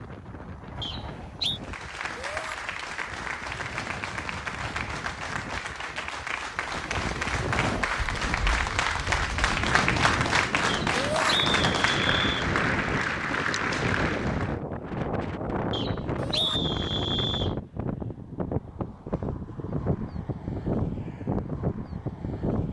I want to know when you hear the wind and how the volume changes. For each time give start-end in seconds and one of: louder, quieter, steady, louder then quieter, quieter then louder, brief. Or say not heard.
0.0-22.6 louder.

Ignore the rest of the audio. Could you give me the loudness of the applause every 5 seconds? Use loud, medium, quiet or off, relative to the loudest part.
medium, loud, loud, off, off.